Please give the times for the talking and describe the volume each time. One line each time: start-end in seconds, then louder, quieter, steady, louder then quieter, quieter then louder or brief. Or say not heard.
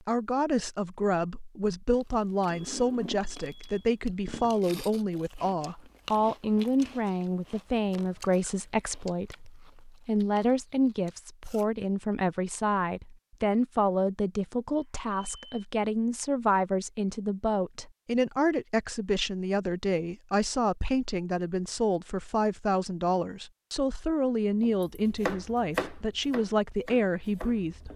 0.1-27.9 steady.